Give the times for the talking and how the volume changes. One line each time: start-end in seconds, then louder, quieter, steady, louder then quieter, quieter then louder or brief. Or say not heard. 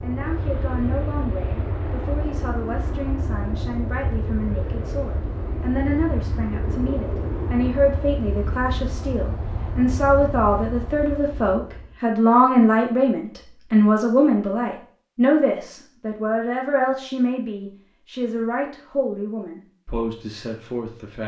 0.0-21.2 louder then quieter.